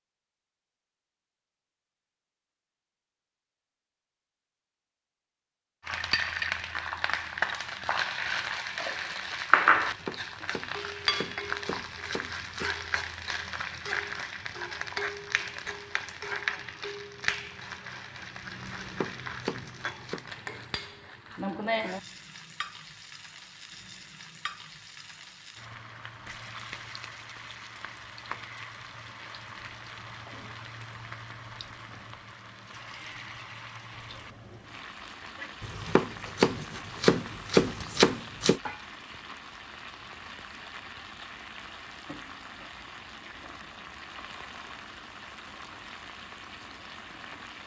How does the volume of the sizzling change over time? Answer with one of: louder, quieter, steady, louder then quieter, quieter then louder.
quieter.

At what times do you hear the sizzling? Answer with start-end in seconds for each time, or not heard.
5.8-47.6.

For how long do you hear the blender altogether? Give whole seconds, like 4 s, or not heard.
not heard.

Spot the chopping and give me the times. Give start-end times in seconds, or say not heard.
9.8-12.7, 18.8-20.2, 35.6-38.6.